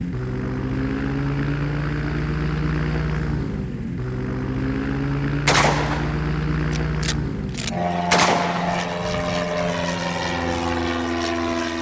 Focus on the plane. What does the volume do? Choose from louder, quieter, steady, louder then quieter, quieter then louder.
steady.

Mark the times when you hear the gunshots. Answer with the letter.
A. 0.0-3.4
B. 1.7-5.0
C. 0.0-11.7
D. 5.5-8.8
D.